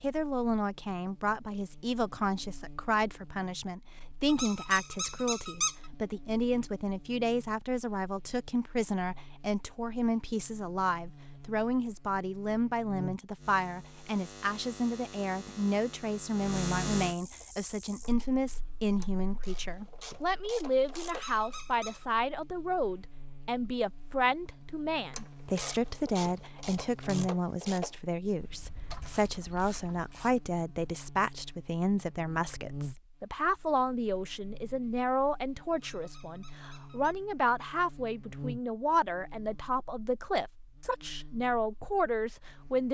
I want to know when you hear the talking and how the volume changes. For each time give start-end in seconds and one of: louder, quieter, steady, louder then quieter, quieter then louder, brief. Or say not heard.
0.0-42.8 steady.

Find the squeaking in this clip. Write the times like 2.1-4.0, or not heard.
4.2-5.8, 21.1-22.1, 35.8-37.1.